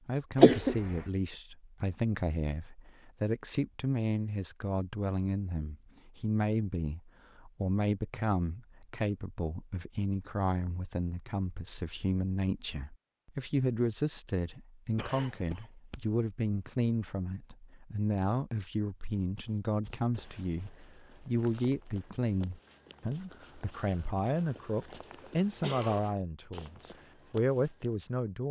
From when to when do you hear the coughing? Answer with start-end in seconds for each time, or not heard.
0.3-0.8, 14.9-16.0, 24.4-26.0.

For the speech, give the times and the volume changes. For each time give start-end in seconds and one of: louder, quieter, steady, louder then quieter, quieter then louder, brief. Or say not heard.
0.1-28.4 steady.